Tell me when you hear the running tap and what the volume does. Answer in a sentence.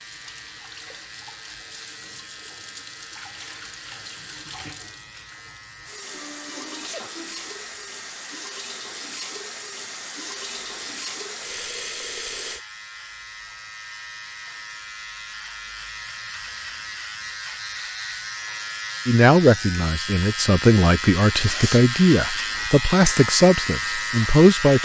You can hear the running tap from 0.0 to 12.6 s, getting louder.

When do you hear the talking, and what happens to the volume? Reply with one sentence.
You can hear the talking from 19.1 to 24.8 s, at a steady volume.